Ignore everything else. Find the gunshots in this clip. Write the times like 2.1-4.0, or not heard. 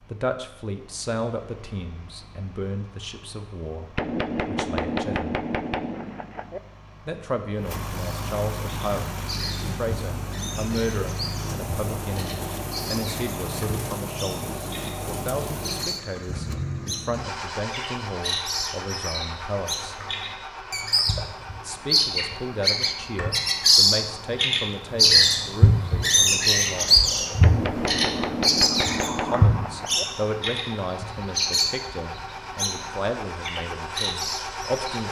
4.0-6.6, 27.4-30.1.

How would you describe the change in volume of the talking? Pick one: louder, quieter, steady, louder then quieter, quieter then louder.
steady.